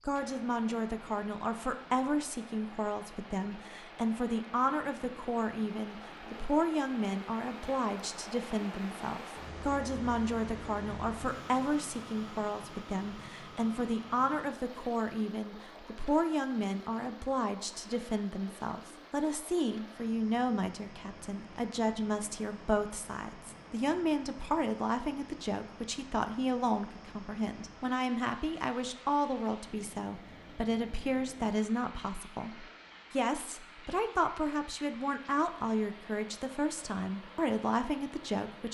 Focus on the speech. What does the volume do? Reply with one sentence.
The loudness of the speech stays about the same.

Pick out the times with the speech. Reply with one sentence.
The speech can be heard from 0.1 to 38.7 s.